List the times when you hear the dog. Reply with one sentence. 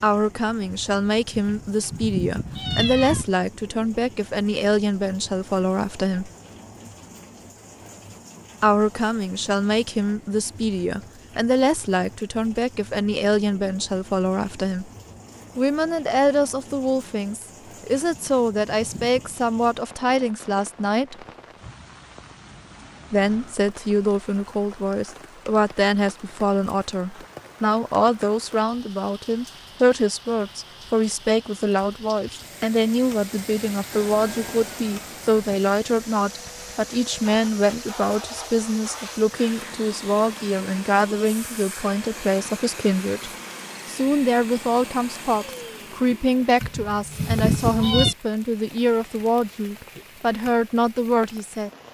The dog can't be heard in this clip.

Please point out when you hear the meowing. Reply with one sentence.
You can hear the meowing from 1.3 to 3.2 s, from 18.1 to 19.4 s and from 46.6 to 48.1 s.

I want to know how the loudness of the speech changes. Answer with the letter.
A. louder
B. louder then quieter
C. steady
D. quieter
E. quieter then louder
C.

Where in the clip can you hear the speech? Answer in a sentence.
The speech can be heard from 0.0 to 6.3 s, from 8.6 to 14.9 s, from 15.6 to 21.1 s and from 23.1 to 51.7 s.